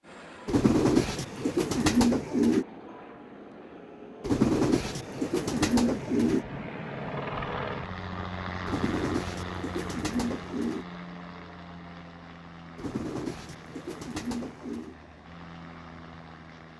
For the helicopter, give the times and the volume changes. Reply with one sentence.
The helicopter can be heard from 0.0 to 16.7 s, getting louder then quieter.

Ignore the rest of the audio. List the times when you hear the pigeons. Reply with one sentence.
You can hear the pigeons from 0.5 to 2.6 s, from 4.2 to 6.5 s, from 8.7 to 10.8 s and from 12.8 to 14.9 s.